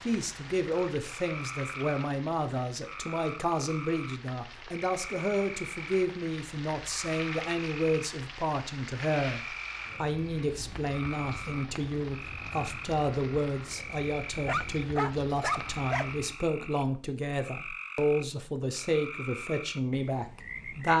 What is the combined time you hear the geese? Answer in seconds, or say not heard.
not heard.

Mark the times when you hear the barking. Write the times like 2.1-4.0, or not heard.
14.4-16.1.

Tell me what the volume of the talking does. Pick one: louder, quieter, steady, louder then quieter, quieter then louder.
steady.